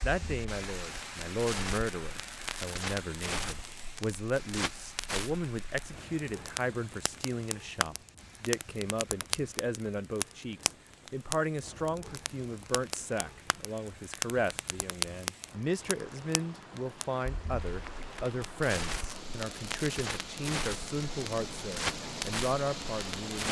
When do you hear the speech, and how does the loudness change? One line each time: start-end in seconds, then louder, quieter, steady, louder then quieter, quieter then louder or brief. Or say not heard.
0.0-23.4 steady.